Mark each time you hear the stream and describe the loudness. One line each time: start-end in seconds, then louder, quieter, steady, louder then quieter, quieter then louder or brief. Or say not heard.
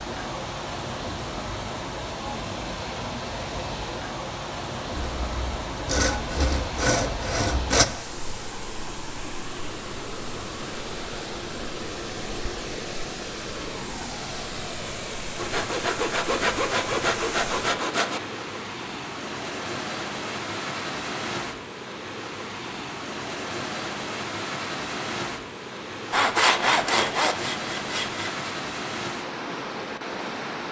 0.0-30.6 steady.